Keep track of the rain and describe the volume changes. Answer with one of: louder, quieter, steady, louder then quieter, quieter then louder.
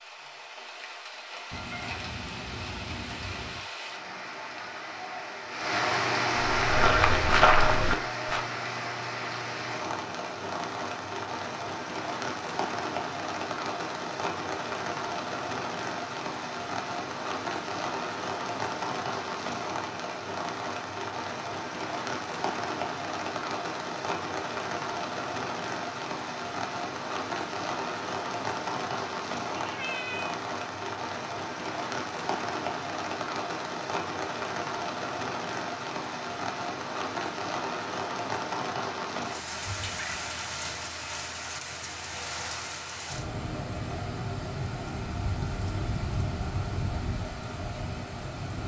steady.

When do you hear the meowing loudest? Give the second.
30 s.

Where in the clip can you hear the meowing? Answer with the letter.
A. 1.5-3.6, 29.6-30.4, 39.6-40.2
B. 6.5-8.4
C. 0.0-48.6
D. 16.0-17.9
A.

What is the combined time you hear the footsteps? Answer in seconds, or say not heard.
2 s.